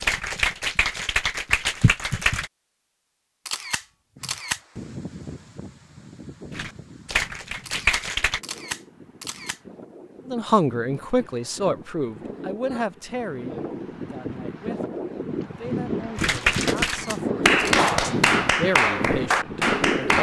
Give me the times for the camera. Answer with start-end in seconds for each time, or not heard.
3.5-4.6, 7.7-9.6, 16.9-17.9.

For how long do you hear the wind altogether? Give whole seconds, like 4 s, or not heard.
16 s.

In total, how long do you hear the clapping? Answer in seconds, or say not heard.
8 s.